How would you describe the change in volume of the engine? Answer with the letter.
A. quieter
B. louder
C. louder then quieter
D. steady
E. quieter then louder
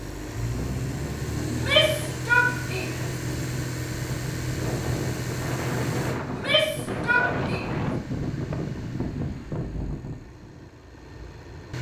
A.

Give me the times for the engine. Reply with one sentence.
The engine can be heard from 0.0 to 11.7 s.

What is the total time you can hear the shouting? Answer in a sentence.
You can hear the shouting for 3 seconds altogether.